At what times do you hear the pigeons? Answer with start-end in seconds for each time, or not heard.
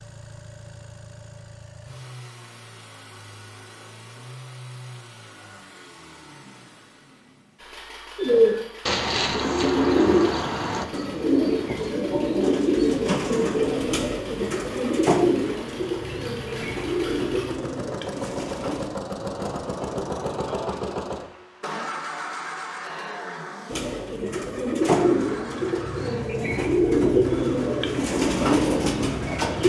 8.2-18.9, 23.6-29.6.